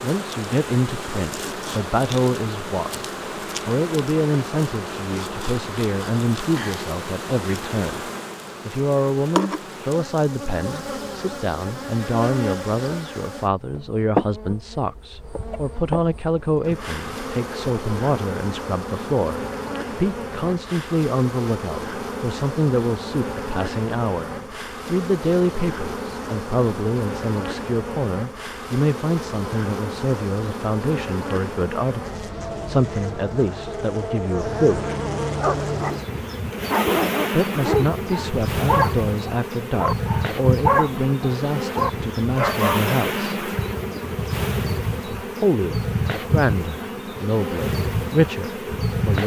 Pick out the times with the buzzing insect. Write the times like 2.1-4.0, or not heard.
0.0-49.2.